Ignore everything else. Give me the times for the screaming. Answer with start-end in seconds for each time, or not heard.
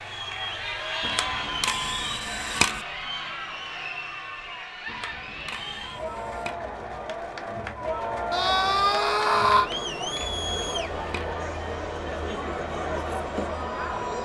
8.3-9.7.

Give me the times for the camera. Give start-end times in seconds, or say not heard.
1.0-2.9, 4.8-6.5, 9.6-11.3.